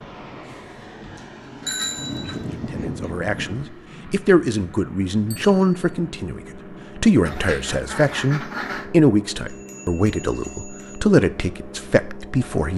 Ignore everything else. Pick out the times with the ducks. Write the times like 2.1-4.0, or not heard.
1.9-3.8, 7.2-8.9.